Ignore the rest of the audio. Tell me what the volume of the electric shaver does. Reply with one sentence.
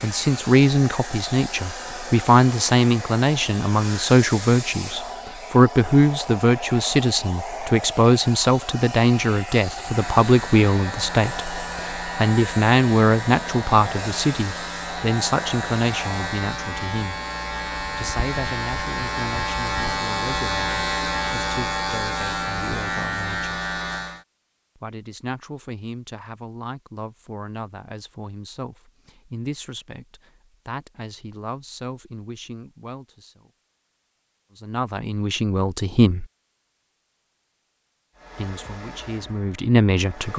The loudness of the electric shaver goes up.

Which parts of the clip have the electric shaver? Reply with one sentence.
You can hear the electric shaver from 9.8 to 24.2 s.